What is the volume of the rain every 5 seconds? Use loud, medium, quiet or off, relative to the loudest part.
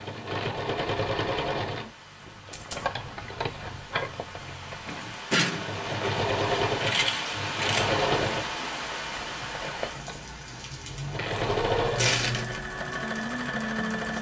medium, loud, medium.